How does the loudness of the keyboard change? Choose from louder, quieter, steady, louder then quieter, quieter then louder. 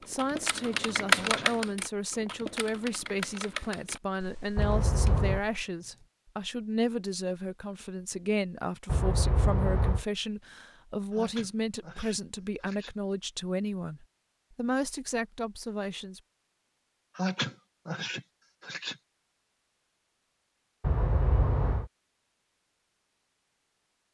quieter.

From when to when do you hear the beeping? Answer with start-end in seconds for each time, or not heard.
4.5-5.4, 8.8-10.1, 20.8-21.9.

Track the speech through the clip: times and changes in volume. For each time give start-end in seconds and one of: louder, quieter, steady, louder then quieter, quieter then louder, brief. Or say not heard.
0.1-16.2 steady.